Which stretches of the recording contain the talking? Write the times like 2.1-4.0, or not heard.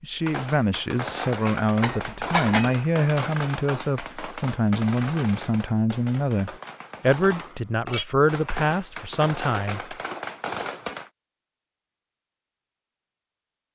0.0-9.9.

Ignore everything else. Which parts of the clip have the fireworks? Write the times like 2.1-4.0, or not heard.
0.2-11.1.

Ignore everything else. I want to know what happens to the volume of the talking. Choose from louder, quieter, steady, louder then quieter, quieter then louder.
steady.